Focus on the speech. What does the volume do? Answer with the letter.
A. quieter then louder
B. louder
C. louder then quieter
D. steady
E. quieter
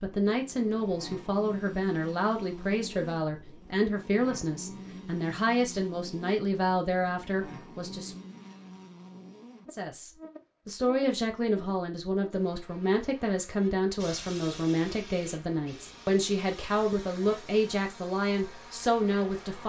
D.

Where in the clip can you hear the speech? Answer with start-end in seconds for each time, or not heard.
0.0-8.2, 9.7-19.6.